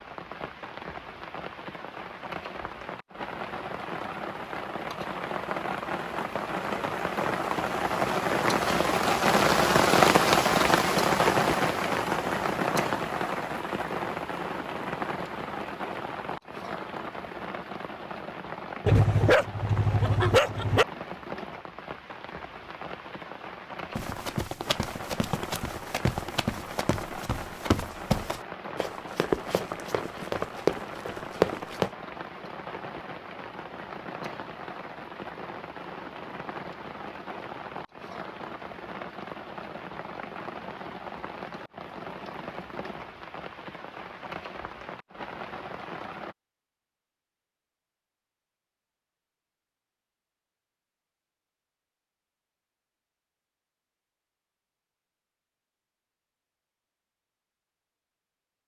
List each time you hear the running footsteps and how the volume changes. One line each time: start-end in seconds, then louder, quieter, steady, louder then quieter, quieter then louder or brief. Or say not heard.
23.9-31.9 louder.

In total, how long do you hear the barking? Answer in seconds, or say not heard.
2 s.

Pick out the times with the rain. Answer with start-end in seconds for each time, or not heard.
0.0-46.4.